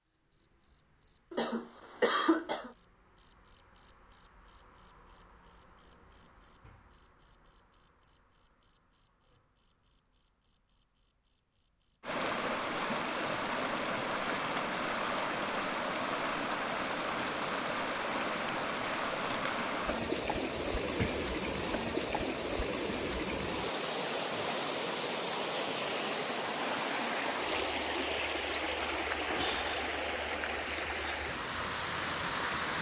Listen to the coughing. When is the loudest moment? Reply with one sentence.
The loudest moment of the coughing is at 2 seconds.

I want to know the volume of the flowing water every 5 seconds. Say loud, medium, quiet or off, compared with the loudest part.
off, off, loud, loud, loud, loud, loud.